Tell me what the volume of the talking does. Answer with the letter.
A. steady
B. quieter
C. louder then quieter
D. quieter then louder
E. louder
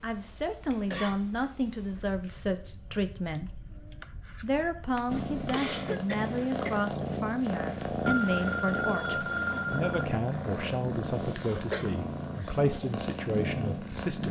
A.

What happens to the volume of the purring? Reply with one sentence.
The loudness of the purring stays about the same.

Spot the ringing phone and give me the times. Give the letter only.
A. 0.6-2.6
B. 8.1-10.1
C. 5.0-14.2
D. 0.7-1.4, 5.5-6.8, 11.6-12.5
B.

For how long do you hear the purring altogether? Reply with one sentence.
The purring can be heard for 9 seconds in total.